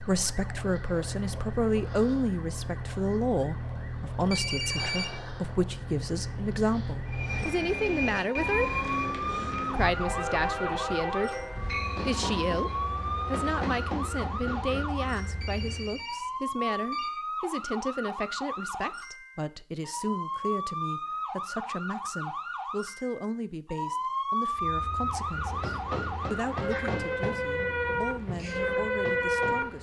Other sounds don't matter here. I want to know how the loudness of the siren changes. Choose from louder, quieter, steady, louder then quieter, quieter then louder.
louder.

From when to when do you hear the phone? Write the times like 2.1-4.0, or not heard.
4.3-5.7, 15.4-17.1.